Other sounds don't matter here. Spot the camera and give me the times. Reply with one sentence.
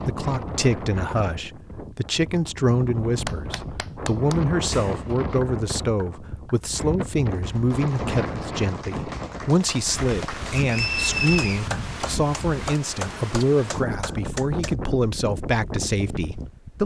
The camera can't be heard in this clip.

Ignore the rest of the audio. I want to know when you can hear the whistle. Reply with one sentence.
The whistle can be heard from 10.7 to 11.7 s.